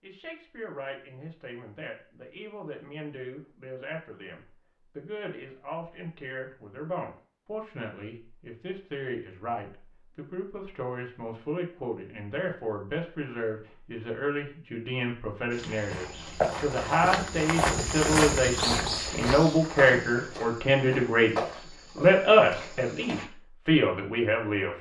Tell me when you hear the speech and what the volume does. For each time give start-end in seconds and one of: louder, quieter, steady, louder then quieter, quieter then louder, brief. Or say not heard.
0.0-24.7 louder.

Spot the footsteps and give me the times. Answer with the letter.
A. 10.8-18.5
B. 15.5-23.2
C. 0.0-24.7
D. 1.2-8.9
B.